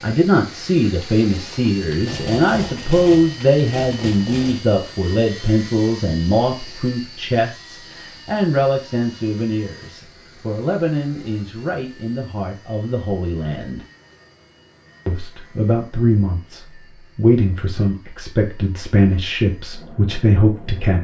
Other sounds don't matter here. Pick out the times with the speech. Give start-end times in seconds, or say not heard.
0.0-13.8, 15.1-20.9.